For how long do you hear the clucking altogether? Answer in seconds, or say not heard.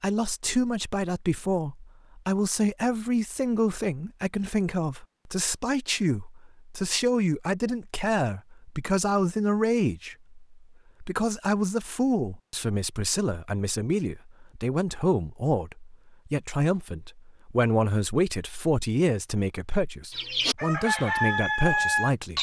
2 s.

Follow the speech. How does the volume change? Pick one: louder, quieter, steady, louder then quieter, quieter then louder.
steady.